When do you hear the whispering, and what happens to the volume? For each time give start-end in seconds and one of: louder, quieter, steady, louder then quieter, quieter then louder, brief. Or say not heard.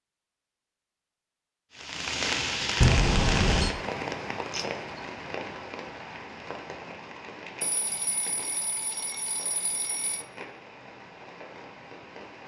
not heard.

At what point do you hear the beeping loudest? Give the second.
3 s.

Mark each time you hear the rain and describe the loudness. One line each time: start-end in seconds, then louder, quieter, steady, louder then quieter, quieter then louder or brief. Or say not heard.
1.7-12.4 quieter.